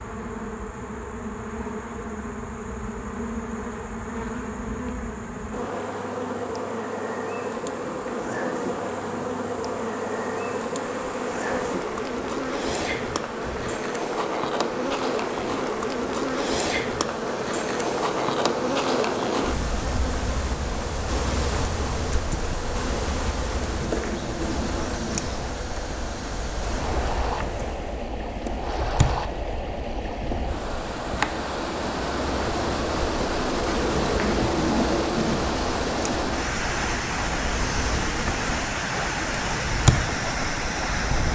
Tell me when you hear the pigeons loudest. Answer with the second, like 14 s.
35 s.